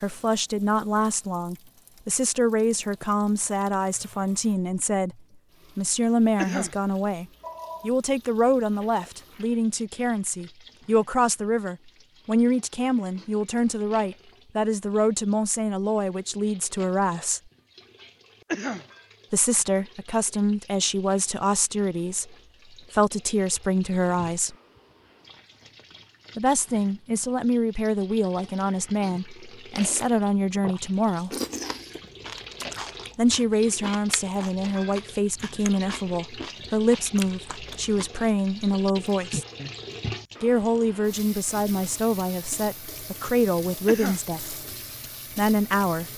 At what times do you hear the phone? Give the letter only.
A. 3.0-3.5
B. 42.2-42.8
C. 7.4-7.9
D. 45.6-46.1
C.